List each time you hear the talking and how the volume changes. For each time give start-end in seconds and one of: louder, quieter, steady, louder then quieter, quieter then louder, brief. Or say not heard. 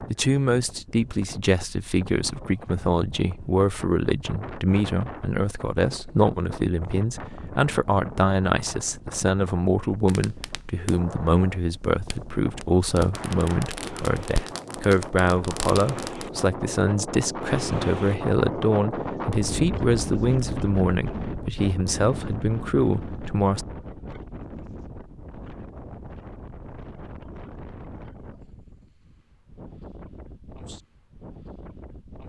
0.0-23.6 steady.